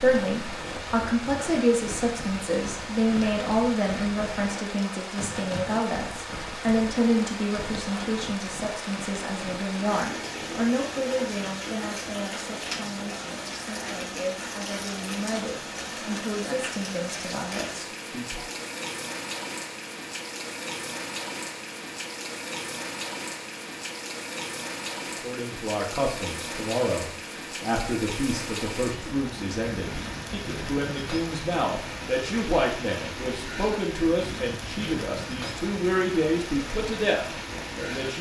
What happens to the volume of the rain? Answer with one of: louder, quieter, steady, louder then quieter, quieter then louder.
steady.